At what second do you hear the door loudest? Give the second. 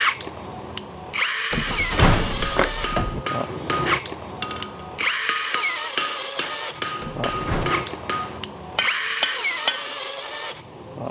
2 s.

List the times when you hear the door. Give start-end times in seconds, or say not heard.
1.5-3.2, 7.0-7.7.